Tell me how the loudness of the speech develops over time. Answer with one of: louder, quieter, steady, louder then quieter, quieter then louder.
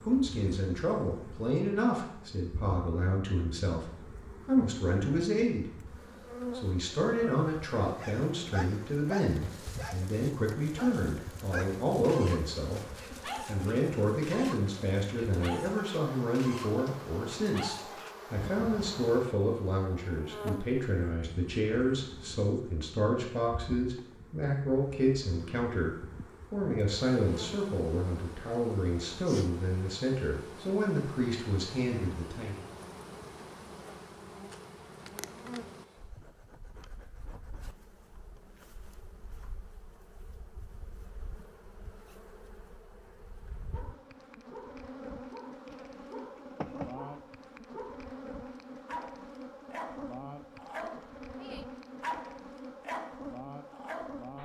steady.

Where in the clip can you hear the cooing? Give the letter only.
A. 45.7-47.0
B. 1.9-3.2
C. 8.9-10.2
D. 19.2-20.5
A.